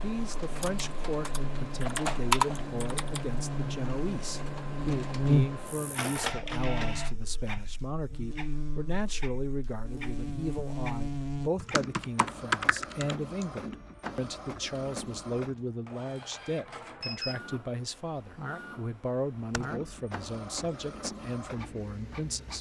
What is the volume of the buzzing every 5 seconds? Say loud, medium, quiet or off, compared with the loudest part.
medium, loud, loud, off, off.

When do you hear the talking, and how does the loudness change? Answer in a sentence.
The talking can be heard from 0.0 to 22.5 s, at a steady volume.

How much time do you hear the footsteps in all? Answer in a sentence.
You can't hear the footsteps here.